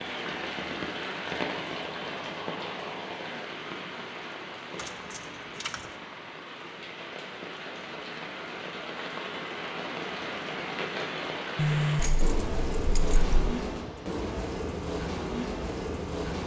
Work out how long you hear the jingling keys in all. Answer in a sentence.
The jingling keys can be heard for 3 seconds in total.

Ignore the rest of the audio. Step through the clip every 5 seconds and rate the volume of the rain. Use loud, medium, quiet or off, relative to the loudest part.
loud, medium, loud, loud.